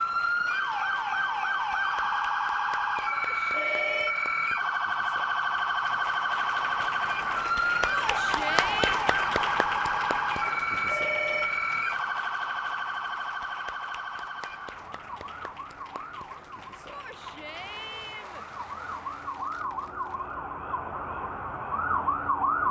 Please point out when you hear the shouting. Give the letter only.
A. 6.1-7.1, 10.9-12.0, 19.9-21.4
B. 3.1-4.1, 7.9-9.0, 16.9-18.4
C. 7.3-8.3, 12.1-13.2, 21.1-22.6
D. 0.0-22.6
B.